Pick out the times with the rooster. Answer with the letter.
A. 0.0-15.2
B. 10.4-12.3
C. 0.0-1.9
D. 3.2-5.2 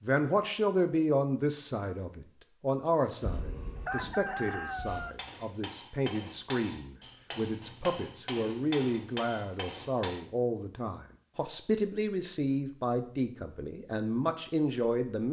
D.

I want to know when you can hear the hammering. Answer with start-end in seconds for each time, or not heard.
4.8-10.2.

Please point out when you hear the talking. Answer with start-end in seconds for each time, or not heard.
0.0-15.2.